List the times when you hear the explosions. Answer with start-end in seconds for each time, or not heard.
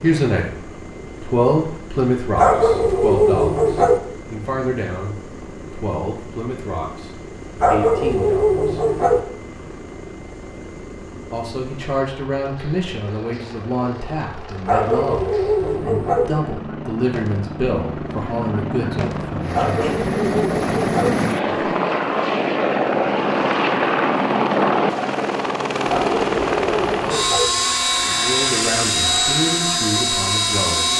not heard.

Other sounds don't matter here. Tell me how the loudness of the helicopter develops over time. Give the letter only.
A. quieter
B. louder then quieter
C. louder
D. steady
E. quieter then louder
C.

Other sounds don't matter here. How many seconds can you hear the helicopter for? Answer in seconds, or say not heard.
31 s.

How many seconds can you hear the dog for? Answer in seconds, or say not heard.
8 s.